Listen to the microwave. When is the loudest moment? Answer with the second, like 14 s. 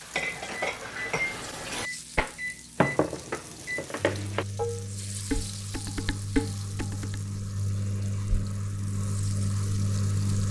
10 s.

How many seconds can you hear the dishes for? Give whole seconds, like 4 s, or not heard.
7 s.